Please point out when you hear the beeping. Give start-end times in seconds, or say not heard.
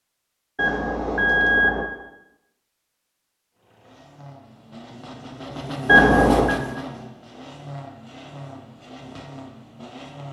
0.6-1.9, 5.8-6.5.